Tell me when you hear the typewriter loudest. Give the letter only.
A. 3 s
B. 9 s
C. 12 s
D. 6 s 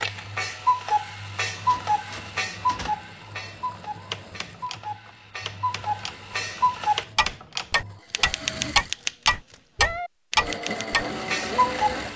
B.